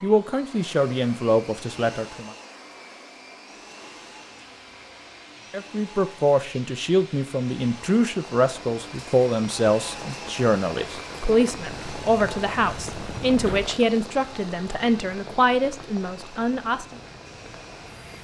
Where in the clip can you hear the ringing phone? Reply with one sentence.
The ringing phone can't be heard in this clip.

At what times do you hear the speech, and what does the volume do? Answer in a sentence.
The speech can be heard briefly from 0.0 to 2.3 s; and from 5.5 to 16.9 s, at a steady volume.